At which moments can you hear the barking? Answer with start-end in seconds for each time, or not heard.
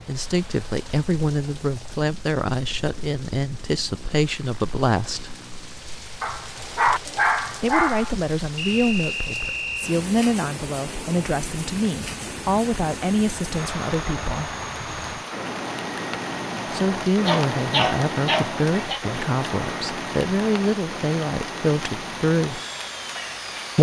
6.2-8.2, 17.2-19.0.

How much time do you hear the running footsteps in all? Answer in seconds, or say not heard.
not heard.